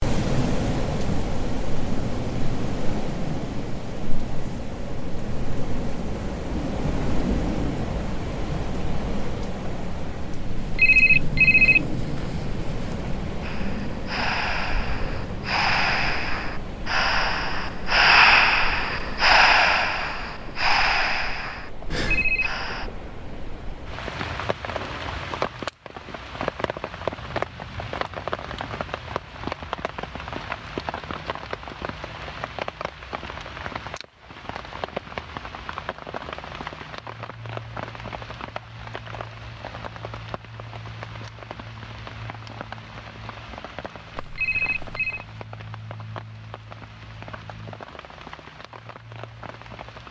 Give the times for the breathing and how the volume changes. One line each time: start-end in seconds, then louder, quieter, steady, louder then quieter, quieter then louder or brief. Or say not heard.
13.4-22.9 louder then quieter.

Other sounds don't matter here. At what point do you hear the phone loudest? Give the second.
11 s.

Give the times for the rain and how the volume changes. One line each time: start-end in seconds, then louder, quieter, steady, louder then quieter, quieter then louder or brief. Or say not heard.
0.0-50.0 quieter.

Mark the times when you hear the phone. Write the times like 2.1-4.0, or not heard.
10.6-13.1, 22.0-22.6, 44.1-45.2.